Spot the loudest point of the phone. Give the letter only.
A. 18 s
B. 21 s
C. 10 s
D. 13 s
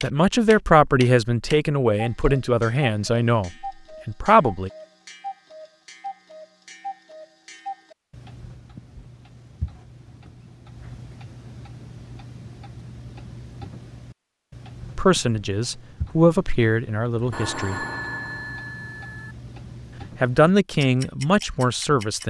A.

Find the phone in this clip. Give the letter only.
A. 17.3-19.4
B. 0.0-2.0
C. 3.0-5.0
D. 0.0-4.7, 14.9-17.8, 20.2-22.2
A.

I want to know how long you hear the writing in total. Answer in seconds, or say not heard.
not heard.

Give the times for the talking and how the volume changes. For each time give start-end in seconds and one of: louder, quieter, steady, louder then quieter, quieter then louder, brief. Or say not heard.
0.0-4.7 quieter
14.9-17.8 brief
20.2-22.2 brief.